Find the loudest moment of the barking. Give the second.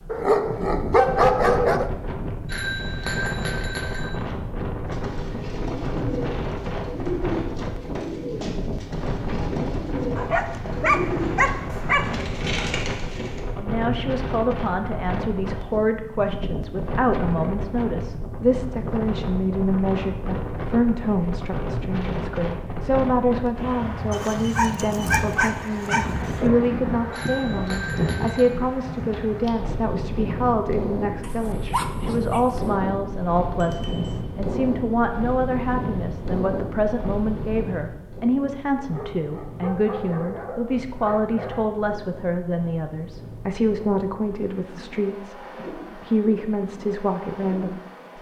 1 s.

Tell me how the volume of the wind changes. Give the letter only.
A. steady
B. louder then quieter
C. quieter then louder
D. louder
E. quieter
E.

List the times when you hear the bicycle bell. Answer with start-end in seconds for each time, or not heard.
2.5-4.1, 27.1-28.4, 33.6-34.1.